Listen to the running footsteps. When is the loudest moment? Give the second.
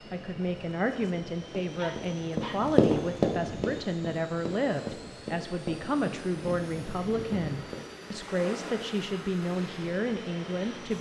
3 s.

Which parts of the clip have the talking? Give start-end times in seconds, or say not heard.
0.1-10.9.